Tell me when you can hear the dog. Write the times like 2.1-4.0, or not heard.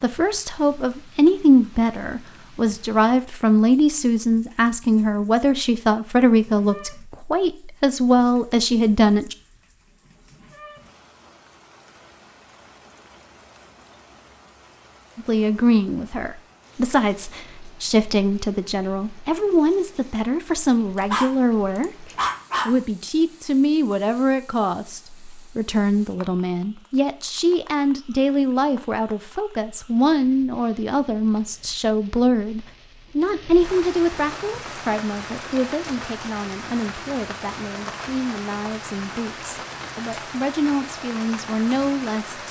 20.9-22.8.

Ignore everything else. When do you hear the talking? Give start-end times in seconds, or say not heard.
0.0-9.3, 15.2-42.4.